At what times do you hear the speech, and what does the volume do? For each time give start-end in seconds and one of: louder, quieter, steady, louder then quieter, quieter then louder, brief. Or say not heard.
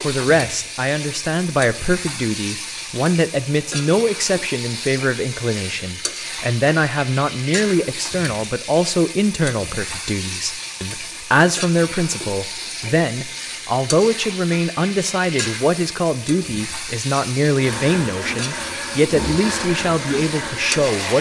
0.0-21.1 steady.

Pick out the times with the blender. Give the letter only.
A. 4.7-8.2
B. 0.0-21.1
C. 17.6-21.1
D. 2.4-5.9
C.